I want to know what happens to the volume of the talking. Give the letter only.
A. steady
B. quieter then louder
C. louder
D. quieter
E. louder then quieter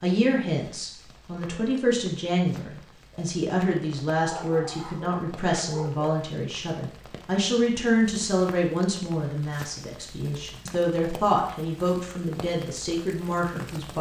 A.